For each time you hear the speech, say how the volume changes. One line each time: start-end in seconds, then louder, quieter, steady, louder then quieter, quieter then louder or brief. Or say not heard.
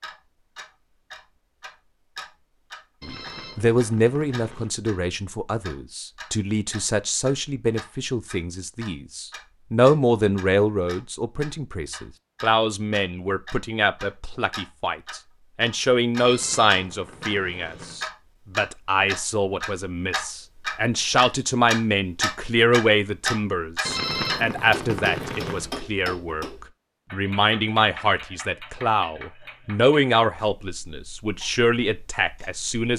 3.0-32.9 steady.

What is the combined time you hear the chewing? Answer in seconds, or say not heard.
not heard.